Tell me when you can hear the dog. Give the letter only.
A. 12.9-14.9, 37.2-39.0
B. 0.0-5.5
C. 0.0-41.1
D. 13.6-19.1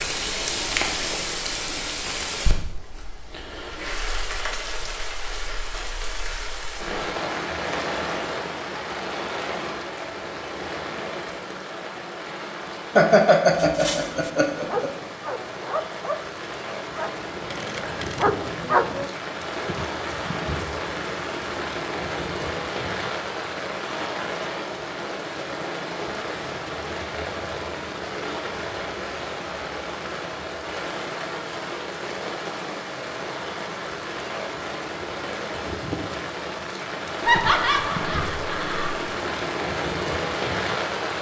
D.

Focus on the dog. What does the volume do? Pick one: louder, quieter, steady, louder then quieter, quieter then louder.
quieter then louder.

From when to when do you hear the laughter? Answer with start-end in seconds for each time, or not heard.
12.9-14.9, 37.2-39.0.